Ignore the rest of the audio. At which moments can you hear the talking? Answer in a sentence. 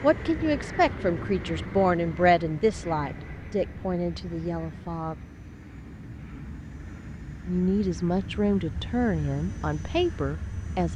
The talking can be heard from 0.0 to 5.2 s and from 7.5 to 10.9 s.